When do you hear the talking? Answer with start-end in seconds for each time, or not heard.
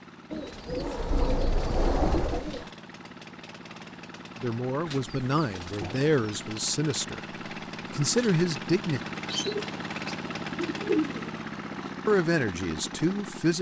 4.4-7.2, 7.9-9.0, 12.1-13.5.